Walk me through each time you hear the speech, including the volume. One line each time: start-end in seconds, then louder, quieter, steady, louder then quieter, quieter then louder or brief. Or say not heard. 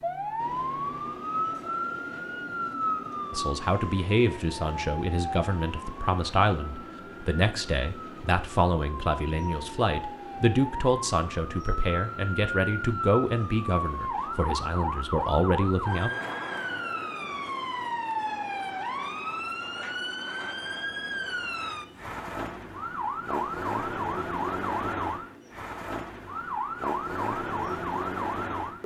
3.3-16.1 steady.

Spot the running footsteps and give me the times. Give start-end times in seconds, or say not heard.
not heard.